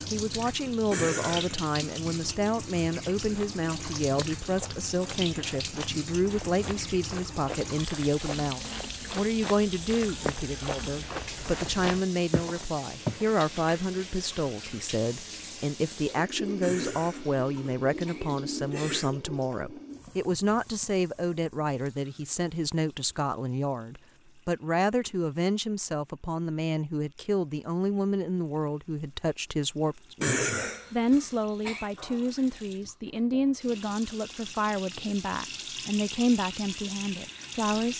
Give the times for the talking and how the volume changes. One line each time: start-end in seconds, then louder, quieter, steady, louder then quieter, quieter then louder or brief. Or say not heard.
0.1-37.9 steady.